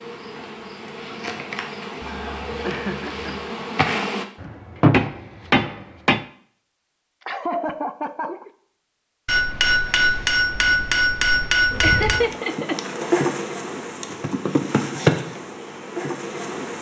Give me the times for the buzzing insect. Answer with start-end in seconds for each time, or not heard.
0.0-4.2, 11.7-16.7.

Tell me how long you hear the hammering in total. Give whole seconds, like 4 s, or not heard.
5 s.